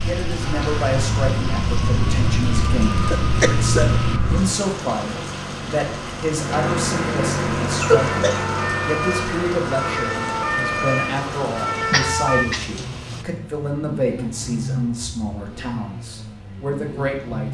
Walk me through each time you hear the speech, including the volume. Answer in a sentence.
The speech can be heard from 0.0 to 17.4 s, at a steady volume.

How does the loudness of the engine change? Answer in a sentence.
The loudness of the engine goes up, then down.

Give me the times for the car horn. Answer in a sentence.
You can't hear the car horn here.